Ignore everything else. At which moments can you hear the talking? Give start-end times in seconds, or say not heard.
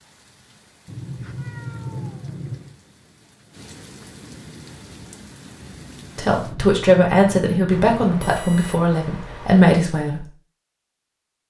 6.2-10.2.